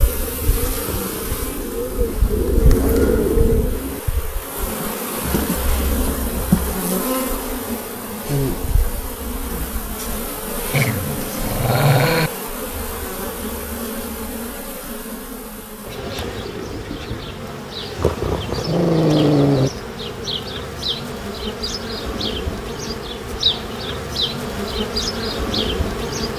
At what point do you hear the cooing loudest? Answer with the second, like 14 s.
3 s.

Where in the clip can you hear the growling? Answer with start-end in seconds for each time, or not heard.
0.8-1.6, 10.7-12.3, 17.9-19.7.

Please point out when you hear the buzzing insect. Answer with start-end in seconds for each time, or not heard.
0.0-26.3.